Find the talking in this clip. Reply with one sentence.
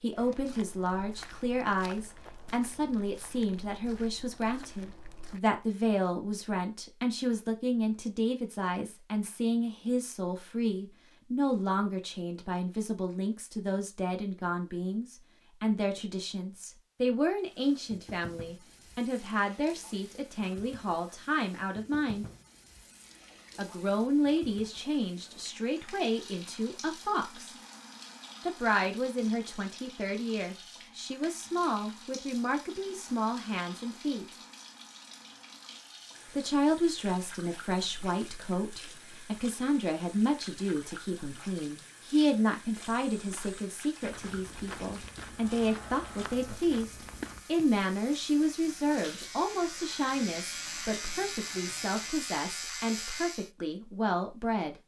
The talking can be heard from 0.0 to 22.2 s, from 23.6 to 27.6 s, from 28.4 to 34.2 s and from 36.3 to 54.8 s.